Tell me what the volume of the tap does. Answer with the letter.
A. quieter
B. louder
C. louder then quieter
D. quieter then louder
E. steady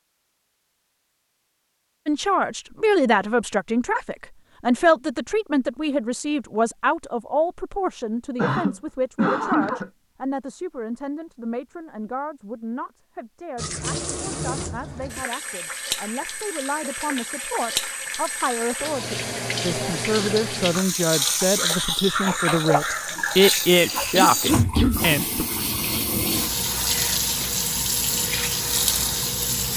B.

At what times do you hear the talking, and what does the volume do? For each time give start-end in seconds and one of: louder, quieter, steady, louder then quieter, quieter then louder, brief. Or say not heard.
2.0-25.4 quieter then louder.